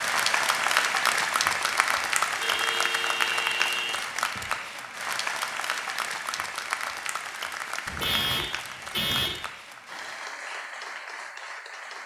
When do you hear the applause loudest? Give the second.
1 s.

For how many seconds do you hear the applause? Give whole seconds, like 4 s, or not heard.
12 s.